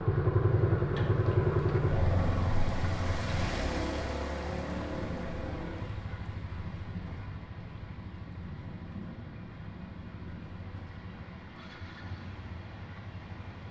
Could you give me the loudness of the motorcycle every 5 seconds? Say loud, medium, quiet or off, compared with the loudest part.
loud, quiet, quiet.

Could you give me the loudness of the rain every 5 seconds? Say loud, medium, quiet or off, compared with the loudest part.
loud, loud, medium.